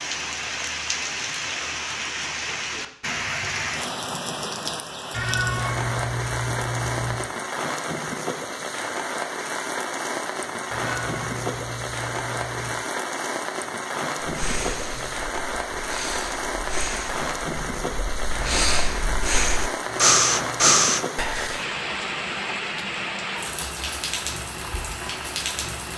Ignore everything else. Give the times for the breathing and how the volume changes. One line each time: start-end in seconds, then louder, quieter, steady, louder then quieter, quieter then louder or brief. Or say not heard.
14.2-21.6 louder.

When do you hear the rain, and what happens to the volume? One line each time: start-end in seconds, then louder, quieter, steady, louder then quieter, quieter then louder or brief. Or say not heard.
0.0-25.9 steady.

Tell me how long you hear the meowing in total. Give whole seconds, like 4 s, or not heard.
5 s.